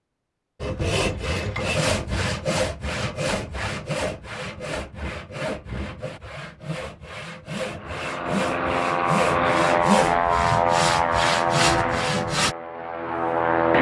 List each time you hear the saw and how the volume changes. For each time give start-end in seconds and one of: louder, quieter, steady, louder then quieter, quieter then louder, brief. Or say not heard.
0.6-12.6 quieter then louder.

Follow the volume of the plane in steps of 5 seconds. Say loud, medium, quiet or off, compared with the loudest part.
off, loud, loud.